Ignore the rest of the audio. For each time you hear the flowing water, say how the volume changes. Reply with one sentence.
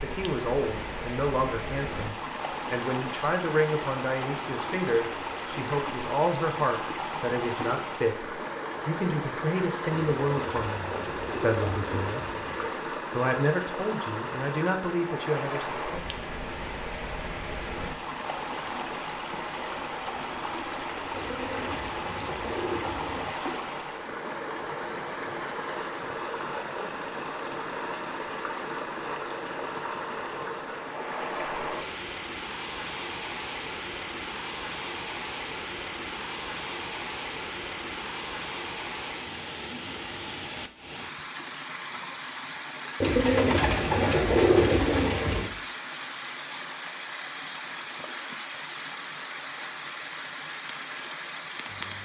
The flowing water can be heard from 0.0 to 51.9 s, at a steady volume.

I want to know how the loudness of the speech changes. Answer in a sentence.
The loudness of the speech stays about the same.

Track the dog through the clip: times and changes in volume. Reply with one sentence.
You can't hear the dog here.